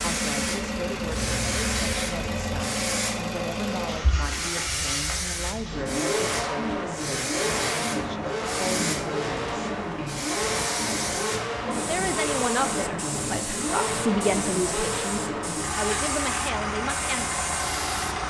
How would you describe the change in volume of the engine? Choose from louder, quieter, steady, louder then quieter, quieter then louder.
steady.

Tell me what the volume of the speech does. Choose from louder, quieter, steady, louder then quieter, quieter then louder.
louder.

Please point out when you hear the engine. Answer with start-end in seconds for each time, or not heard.
0.0-18.2.